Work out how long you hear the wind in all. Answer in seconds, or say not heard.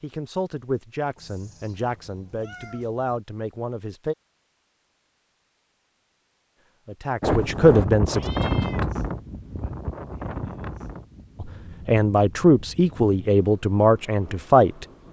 8 s.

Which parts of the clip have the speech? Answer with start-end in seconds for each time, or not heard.
0.0-4.2, 6.8-8.2, 11.4-14.8.